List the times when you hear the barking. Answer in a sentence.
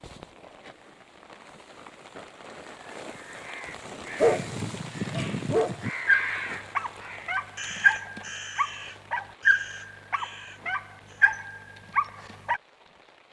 The barking can be heard from 4.2 to 12.6 s.